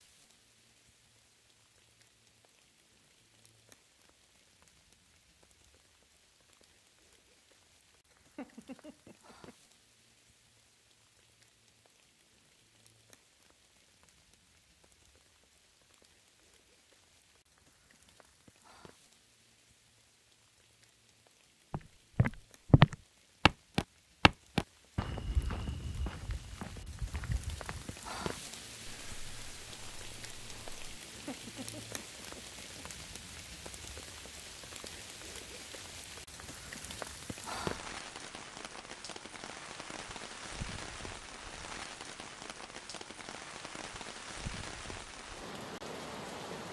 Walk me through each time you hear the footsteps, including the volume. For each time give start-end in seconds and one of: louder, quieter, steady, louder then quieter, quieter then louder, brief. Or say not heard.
21.7-30.8 quieter.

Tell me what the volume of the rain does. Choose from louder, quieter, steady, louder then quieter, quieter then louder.
louder.